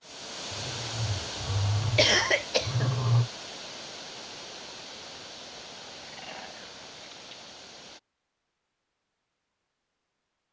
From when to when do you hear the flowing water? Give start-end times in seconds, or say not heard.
0.0-8.0.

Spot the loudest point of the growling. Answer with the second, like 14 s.
3 s.